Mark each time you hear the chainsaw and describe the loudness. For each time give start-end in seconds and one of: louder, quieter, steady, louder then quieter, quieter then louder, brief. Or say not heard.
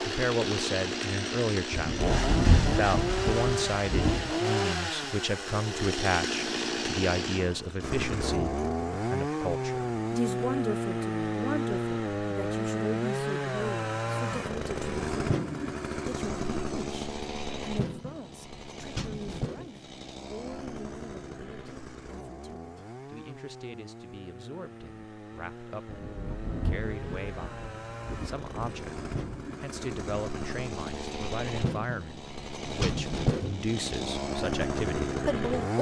0.0-35.7 quieter then louder.